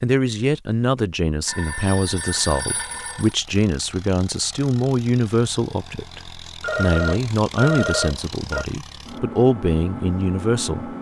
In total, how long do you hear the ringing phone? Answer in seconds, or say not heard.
4 s.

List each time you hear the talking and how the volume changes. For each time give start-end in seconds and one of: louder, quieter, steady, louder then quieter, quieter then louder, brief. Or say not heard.
0.0-10.9 steady.